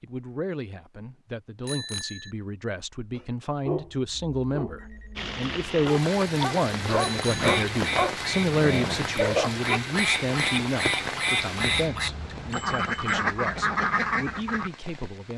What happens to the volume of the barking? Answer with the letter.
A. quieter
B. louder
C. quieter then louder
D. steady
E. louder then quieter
C.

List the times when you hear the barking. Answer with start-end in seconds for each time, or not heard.
3.1-9.8.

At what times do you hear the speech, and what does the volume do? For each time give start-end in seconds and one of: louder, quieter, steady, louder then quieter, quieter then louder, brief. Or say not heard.
0.0-15.3 louder then quieter.